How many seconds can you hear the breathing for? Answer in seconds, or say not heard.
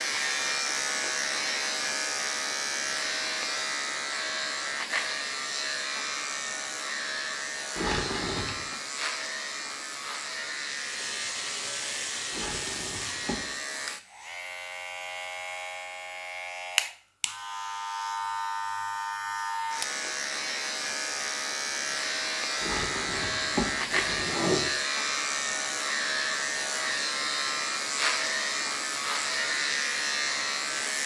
not heard.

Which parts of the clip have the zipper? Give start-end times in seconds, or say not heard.
7.8-8.8, 12.3-13.4, 22.6-24.6.